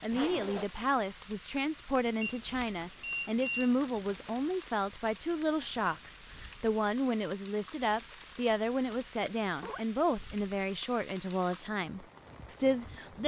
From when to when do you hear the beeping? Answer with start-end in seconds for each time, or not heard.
2.2-4.7.